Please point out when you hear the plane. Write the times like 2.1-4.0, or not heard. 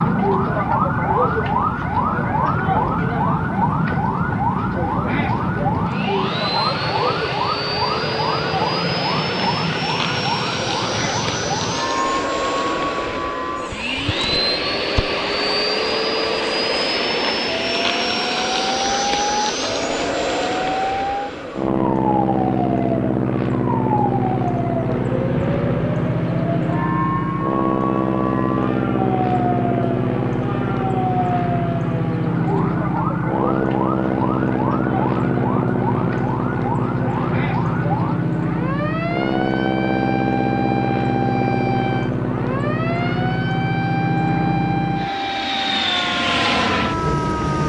0.0-47.6.